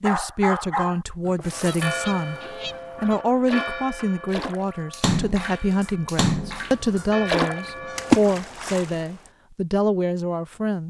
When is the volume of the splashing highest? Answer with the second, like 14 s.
8 s.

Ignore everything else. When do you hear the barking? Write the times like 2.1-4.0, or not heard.
0.0-1.0.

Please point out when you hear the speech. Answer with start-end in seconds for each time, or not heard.
0.0-10.8.